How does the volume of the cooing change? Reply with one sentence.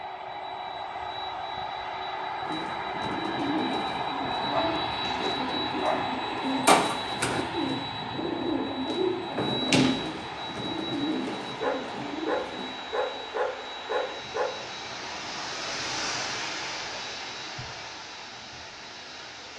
The loudness of the cooing goes up, then down.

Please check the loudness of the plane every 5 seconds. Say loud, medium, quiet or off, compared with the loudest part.
loud, loud, medium, quiet.